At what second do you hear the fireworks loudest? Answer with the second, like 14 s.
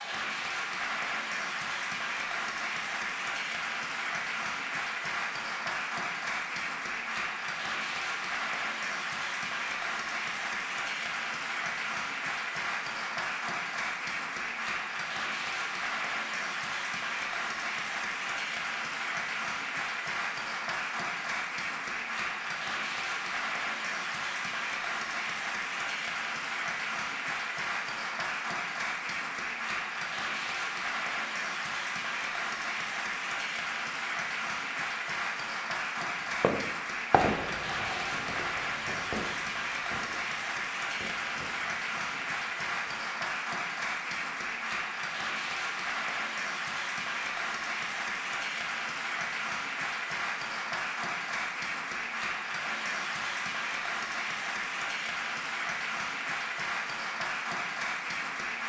37 s.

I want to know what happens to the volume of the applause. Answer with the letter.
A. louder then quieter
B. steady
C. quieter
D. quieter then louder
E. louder
B.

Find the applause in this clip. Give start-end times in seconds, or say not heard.
0.0-58.6.